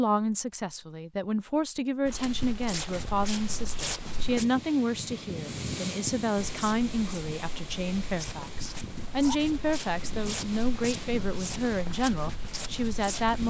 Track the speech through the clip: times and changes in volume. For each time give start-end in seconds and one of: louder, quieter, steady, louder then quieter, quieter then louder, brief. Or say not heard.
0.0-13.4 steady.